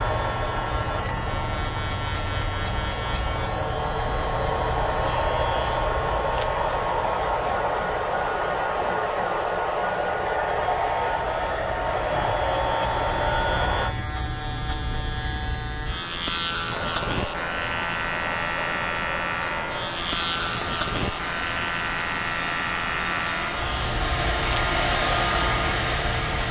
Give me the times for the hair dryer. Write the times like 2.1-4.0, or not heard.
0.0-13.9, 16.6-26.4.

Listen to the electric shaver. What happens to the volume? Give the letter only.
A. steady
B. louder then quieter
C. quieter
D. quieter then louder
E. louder
D.